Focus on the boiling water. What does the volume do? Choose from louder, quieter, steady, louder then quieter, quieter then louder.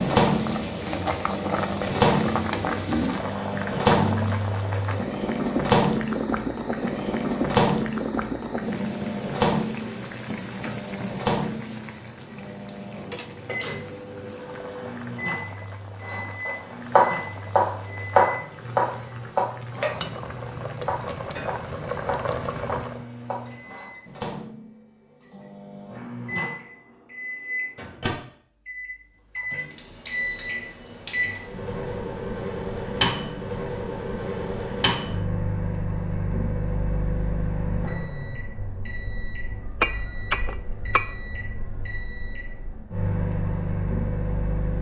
quieter then louder.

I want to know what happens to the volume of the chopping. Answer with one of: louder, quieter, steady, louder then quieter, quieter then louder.
quieter.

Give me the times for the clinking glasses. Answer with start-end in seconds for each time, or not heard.
39.8-41.0.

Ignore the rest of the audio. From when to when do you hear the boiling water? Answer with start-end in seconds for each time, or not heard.
0.0-23.1.